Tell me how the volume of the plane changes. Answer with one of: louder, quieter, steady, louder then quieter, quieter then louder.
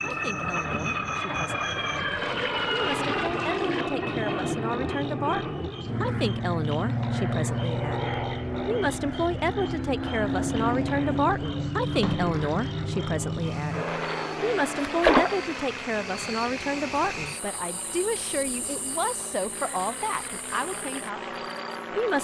quieter.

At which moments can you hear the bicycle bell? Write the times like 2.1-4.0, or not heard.
not heard.